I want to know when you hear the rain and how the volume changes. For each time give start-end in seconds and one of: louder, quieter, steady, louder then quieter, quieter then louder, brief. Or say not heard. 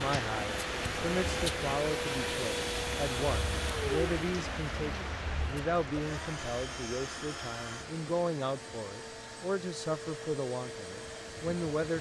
0.0-11.9 quieter.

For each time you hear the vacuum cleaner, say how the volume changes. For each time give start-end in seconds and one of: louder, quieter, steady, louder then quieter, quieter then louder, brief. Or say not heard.
0.0-11.9 quieter.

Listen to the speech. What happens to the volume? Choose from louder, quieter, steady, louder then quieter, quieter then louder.
steady.